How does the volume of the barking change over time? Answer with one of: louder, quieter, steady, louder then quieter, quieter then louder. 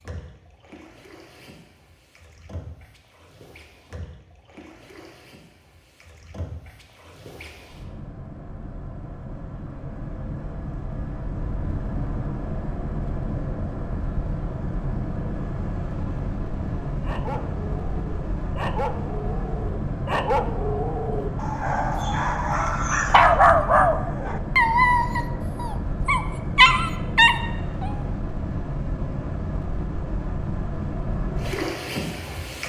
louder.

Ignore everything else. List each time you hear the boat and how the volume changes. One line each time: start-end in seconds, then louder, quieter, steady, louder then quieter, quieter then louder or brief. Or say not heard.
0.0-32.6 louder.